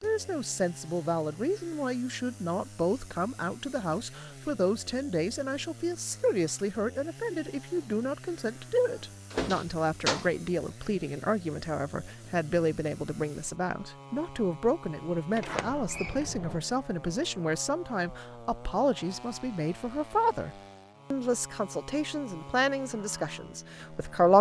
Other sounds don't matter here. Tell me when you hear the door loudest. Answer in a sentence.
The loudest moment of the door is at 10 seconds.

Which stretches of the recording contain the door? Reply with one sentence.
The door can be heard from 8.9 to 10.3 s and from 15.3 to 16.6 s.